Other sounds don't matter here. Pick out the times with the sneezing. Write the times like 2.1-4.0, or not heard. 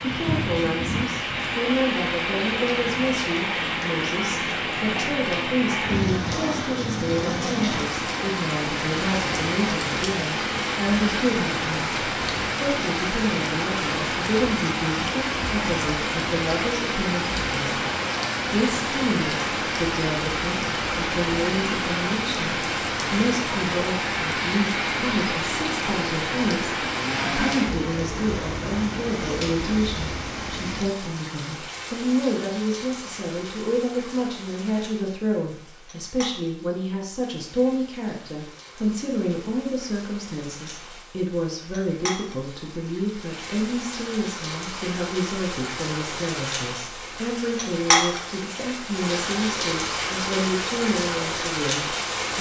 not heard.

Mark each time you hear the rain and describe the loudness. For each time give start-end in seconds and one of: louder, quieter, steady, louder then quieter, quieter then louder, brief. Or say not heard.
0.0-52.3 quieter then louder.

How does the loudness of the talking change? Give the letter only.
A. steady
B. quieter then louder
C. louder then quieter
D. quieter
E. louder
A.